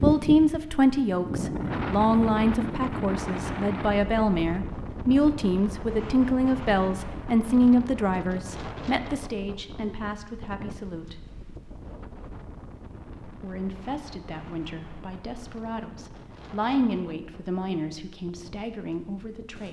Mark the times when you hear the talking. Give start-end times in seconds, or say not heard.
0.0-11.2, 13.2-19.6.